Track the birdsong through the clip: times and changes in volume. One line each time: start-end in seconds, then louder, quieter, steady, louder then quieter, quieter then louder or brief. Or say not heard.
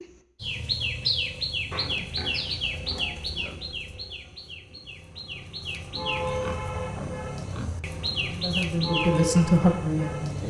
0.0-10.4 quieter then louder.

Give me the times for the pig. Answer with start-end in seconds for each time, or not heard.
1.7-3.6, 6.2-7.8.